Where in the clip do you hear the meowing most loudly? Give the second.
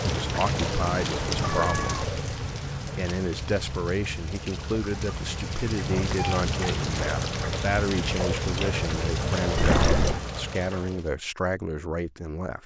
10 s.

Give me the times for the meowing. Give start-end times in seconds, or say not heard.
0.1-2.1, 5.8-6.5, 9.6-10.2.